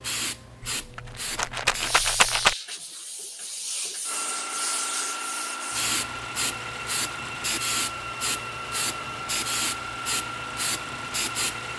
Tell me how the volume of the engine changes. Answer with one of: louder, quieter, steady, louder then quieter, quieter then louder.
steady.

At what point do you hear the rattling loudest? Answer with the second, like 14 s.
2 s.